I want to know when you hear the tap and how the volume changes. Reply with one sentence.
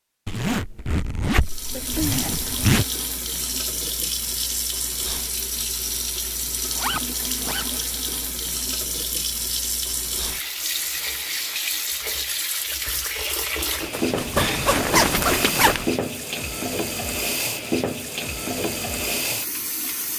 The tap can be heard from 1.4 to 20.1 s, at a steady volume.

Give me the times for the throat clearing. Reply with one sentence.
The throat clearing can be heard from 1.7 to 2.2 s.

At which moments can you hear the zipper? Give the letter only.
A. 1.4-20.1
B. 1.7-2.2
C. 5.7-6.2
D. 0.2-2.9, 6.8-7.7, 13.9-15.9
D.